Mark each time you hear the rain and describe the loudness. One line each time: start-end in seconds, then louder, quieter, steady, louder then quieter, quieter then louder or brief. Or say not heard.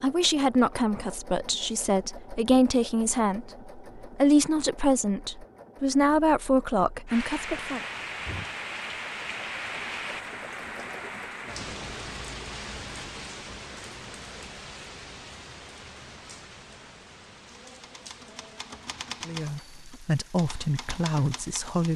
7.0-21.9 quieter.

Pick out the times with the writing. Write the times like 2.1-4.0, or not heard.
not heard.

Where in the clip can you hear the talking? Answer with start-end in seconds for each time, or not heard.
0.0-7.8, 19.2-21.9.